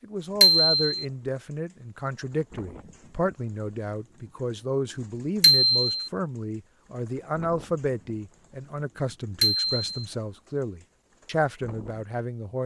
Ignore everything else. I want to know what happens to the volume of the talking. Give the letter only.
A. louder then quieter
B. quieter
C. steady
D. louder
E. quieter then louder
C.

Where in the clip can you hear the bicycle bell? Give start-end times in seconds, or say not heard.
0.4-1.0, 5.4-6.1, 9.4-9.9.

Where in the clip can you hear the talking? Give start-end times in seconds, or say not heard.
0.0-12.6.